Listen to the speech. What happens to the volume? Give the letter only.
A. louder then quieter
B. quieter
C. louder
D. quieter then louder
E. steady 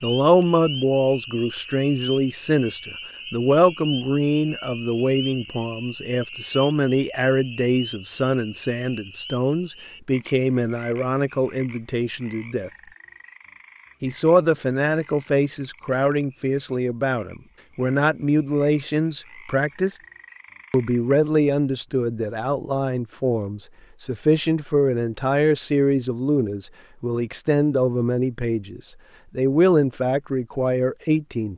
E.